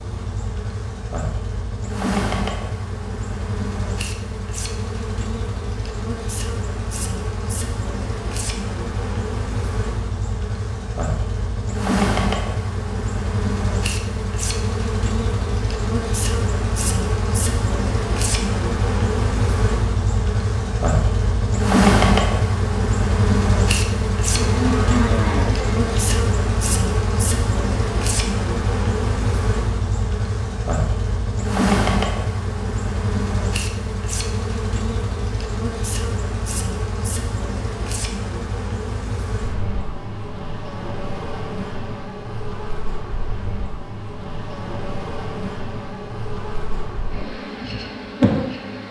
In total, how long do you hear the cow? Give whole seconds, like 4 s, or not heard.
2 s.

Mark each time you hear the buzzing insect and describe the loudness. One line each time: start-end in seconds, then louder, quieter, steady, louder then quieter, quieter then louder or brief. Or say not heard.
0.0-48.8 louder then quieter.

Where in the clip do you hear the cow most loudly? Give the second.
25 s.